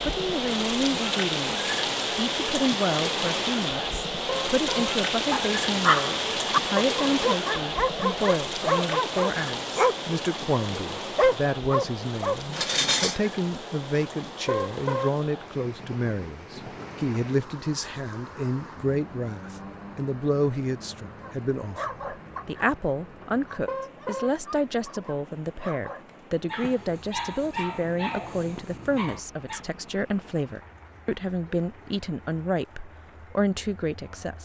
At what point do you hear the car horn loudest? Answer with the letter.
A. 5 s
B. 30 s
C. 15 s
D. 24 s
C.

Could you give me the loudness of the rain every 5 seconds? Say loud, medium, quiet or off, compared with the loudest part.
loud, loud, medium, quiet, quiet, quiet, quiet.